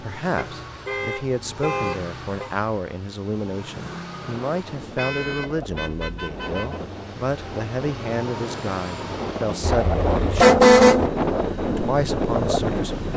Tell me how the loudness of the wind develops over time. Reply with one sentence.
The volume of the wind goes up.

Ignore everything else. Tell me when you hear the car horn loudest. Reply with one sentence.
The loudest moment of the car horn is at 11 seconds.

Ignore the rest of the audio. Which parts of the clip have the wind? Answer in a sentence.
The wind can be heard from 4.1 to 13.1 s.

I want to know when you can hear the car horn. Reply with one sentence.
You can hear the car horn from 0.3 to 2.5 s, from 5.0 to 6.8 s and from 9.6 to 11.1 s.